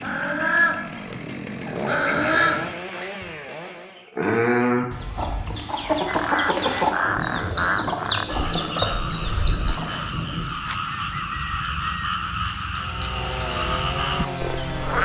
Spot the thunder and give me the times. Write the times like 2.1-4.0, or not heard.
7.0-10.6.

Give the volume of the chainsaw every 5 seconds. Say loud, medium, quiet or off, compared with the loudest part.
loud, off, loud.